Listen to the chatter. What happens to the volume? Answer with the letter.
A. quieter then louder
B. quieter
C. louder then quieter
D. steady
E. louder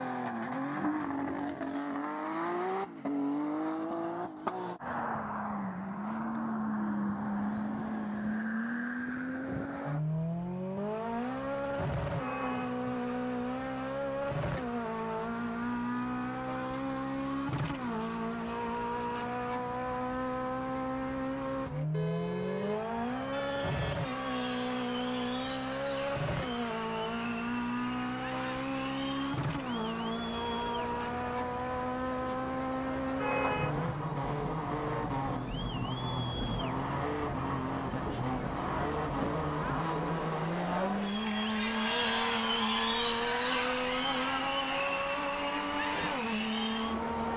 E.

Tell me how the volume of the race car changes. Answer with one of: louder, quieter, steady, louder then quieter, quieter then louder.
steady.